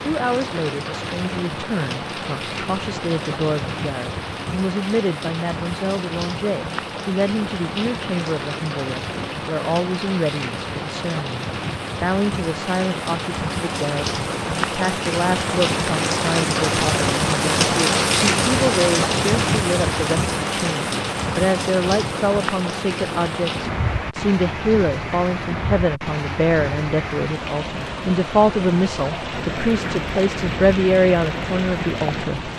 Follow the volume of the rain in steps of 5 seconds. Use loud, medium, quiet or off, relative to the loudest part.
medium, medium, medium, loud, medium, medium, medium.